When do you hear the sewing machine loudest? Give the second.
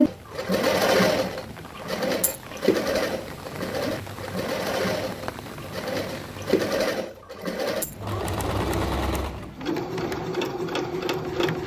1 s.